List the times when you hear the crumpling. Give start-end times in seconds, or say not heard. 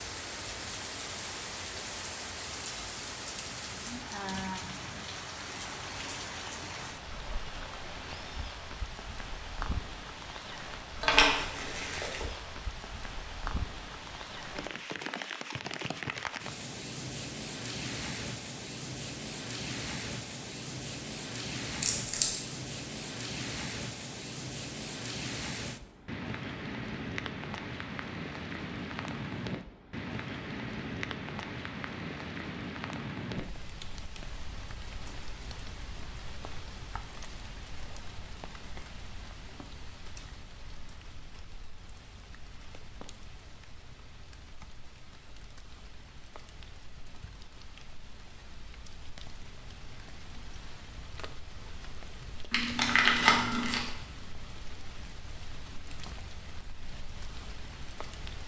11.0-12.2, 21.8-22.4, 52.5-53.9.